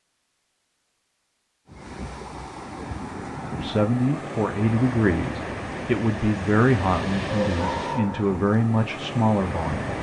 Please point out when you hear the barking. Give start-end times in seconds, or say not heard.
7.2-8.4.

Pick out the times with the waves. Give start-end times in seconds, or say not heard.
1.6-9.9.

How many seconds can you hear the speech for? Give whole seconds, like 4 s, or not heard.
6 s.